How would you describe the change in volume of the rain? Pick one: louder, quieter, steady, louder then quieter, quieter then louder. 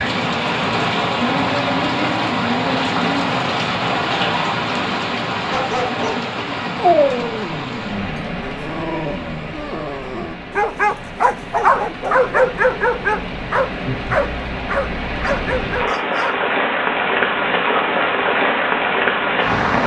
quieter then louder.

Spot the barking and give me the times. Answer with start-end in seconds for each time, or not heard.
5.5-16.4.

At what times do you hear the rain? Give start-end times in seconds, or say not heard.
0.0-19.8.